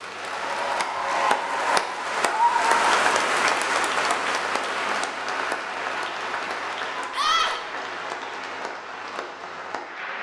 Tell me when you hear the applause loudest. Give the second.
3 s.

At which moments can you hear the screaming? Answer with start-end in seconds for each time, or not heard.
2.2-2.9, 7.2-7.6.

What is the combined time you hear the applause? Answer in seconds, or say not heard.
10 s.